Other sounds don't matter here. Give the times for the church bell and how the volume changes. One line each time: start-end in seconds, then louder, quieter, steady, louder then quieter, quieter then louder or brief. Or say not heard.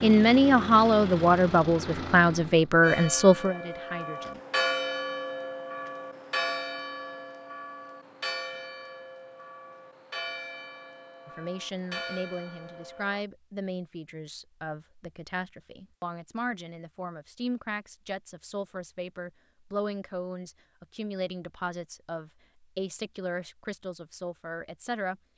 2.8-13.2 quieter.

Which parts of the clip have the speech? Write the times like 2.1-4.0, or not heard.
0.0-4.4, 11.2-25.2.